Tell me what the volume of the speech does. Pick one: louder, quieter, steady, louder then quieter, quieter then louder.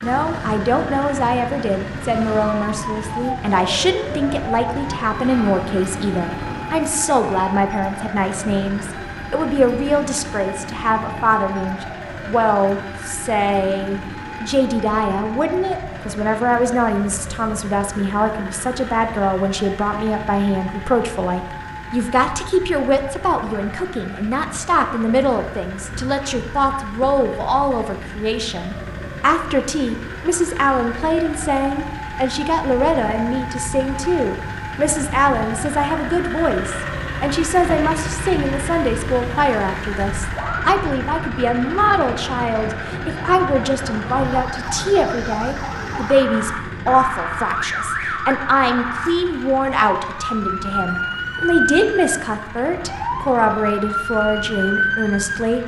steady.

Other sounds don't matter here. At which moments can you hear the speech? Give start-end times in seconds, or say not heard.
0.0-55.6.